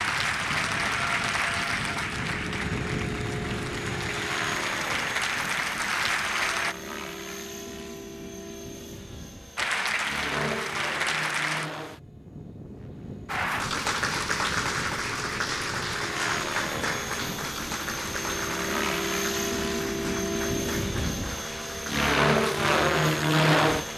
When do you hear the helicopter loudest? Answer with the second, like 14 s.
23 s.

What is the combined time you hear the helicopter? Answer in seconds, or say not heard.
24 s.